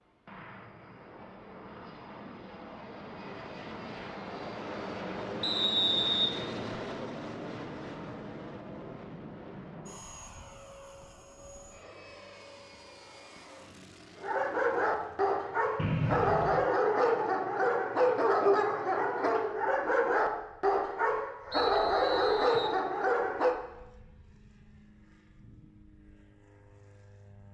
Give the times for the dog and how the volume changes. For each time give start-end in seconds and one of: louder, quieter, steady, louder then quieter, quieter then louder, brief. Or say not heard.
14.2-23.6 steady.